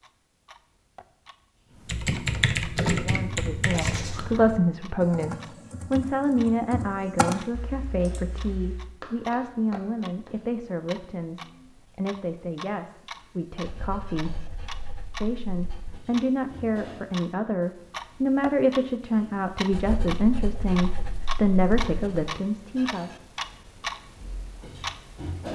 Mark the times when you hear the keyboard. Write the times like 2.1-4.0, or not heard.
1.9-8.9.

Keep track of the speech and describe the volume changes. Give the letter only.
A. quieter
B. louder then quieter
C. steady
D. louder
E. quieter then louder
E.